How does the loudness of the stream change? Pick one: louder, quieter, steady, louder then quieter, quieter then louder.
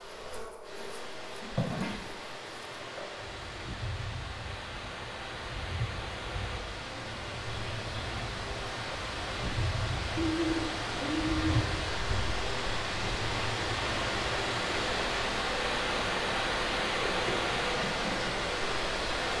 louder.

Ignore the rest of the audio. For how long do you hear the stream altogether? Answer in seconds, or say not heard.
19 s.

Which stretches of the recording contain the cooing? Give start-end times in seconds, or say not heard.
10.2-11.8.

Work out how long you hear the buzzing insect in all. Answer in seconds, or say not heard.
19 s.